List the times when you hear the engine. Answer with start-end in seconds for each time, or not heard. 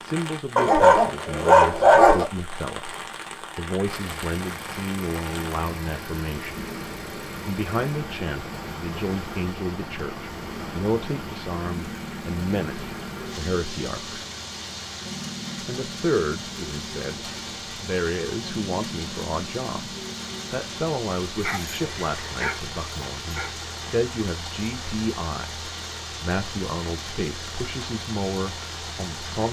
3.9-29.4.